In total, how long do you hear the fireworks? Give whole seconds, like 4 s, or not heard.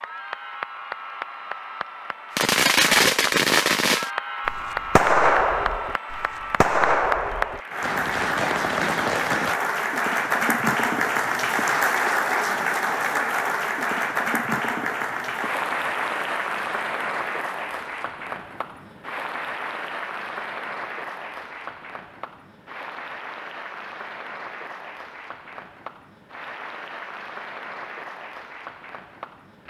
7 s.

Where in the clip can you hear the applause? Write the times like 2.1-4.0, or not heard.
0.0-29.6.